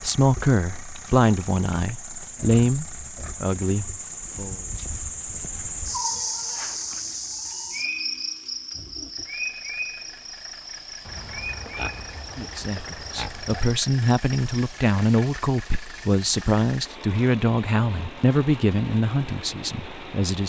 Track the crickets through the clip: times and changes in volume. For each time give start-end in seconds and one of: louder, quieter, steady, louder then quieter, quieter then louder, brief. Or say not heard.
0.0-14.7 louder then quieter.